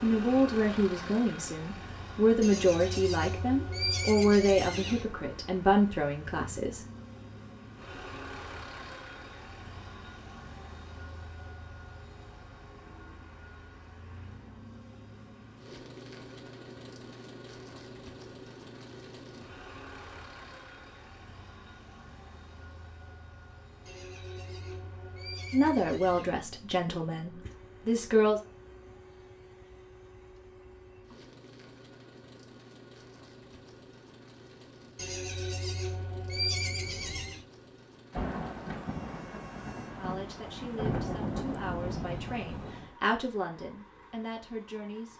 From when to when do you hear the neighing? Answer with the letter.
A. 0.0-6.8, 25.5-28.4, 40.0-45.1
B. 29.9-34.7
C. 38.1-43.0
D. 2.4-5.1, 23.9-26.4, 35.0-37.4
D.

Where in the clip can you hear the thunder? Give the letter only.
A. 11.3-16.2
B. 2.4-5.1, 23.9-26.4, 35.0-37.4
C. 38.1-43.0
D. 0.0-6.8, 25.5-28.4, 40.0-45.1
C.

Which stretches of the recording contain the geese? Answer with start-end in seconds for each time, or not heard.
not heard.